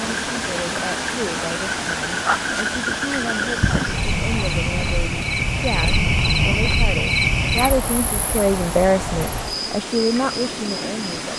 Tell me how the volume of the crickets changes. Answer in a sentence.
The volume of the crickets goes up, then down.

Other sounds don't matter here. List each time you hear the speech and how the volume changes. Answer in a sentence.
The speech can be heard from 0.0 to 11.3 s, getting louder.